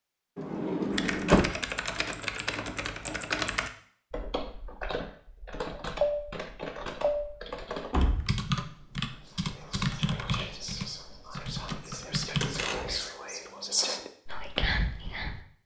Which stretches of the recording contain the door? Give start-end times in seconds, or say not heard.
0.3-1.5, 7.9-8.4, 12.4-12.9.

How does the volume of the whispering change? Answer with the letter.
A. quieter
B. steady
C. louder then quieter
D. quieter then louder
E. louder
E.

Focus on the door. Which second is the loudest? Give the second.
1 s.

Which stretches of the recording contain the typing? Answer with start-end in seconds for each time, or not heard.
0.9-12.7.